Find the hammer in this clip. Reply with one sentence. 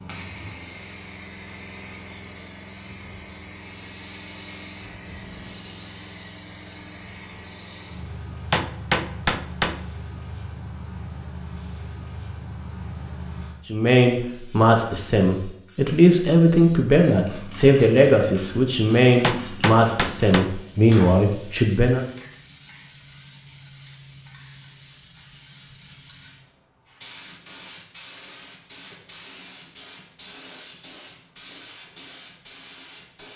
The hammer can be heard from 8.5 to 9.8 s and from 19.2 to 20.5 s.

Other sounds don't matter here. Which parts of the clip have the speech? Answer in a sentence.
You can hear the speech from 13.7 to 22.1 s.